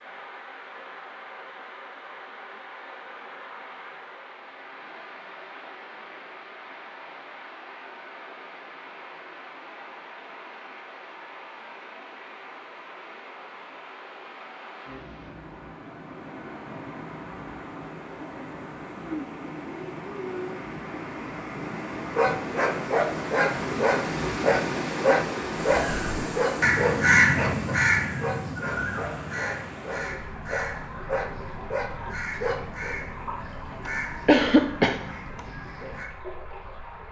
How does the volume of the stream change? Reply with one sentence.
The loudness of the stream goes up, then down.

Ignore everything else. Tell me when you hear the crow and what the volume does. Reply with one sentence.
You can hear the crow from 25.6 to 36.1 s, getting quieter.